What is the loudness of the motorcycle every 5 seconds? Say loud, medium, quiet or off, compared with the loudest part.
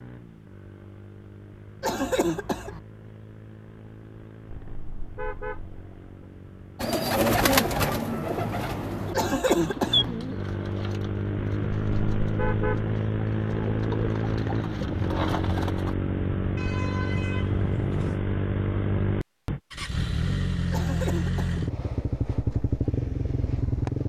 quiet, quiet, loud, loud, loud.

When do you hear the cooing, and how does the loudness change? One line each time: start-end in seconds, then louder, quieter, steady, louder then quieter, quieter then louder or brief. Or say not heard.
6.8-15.9 quieter then louder.